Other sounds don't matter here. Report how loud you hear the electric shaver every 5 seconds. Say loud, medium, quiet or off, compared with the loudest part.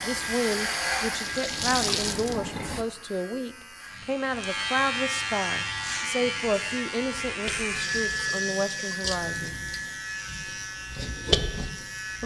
loud, loud, medium.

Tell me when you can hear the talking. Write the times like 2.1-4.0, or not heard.
0.0-9.6.